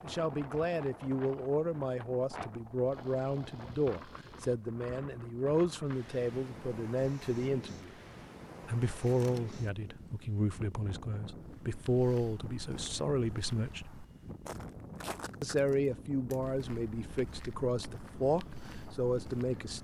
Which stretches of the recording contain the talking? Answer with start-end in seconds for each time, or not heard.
0.0-8.0, 8.6-13.9, 15.4-19.7.